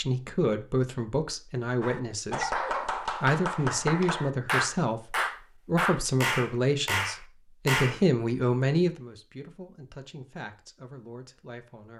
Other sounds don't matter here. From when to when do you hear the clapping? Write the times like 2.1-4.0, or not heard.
1.8-8.0.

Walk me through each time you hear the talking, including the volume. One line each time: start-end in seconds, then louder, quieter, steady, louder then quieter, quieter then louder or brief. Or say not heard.
0.0-2.6 brief
3.2-11.9 quieter.